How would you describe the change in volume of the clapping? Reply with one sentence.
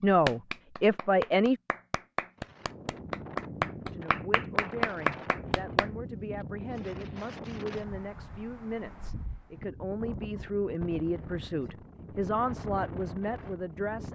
The loudness of the clapping goes up.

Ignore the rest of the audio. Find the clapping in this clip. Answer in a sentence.
The clapping can be heard from 0.0 to 5.9 s.